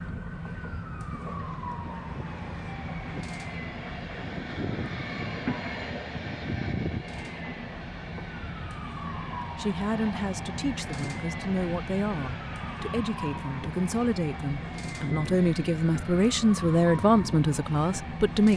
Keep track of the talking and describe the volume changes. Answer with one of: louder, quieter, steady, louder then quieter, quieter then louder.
louder.